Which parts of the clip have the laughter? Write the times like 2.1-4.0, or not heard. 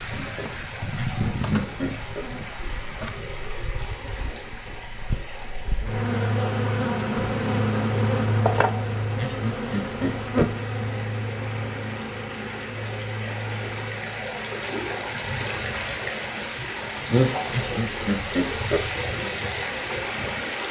0.9-2.2, 9.2-10.6, 17.5-18.9.